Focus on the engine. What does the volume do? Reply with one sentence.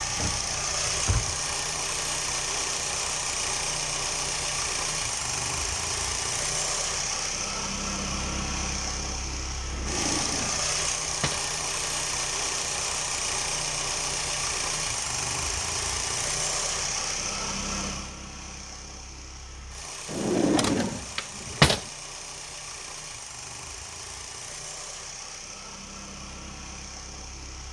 The volume of the engine goes down.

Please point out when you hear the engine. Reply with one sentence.
The engine can be heard from 0.0 to 27.6 s.